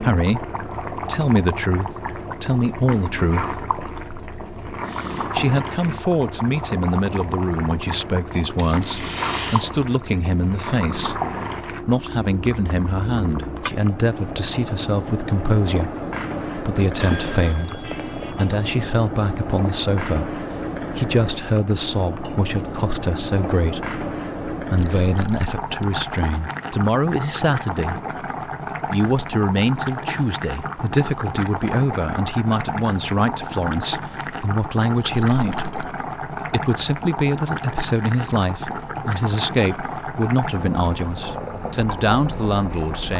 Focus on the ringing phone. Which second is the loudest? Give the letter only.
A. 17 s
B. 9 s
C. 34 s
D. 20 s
A.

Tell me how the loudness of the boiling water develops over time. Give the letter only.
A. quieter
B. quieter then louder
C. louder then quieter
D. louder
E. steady
E.